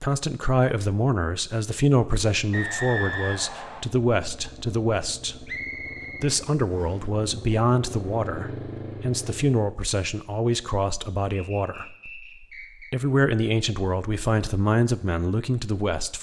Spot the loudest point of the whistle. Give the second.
3 s.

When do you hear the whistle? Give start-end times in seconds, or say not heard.
2.5-3.9, 5.5-7.0, 11.3-12.9.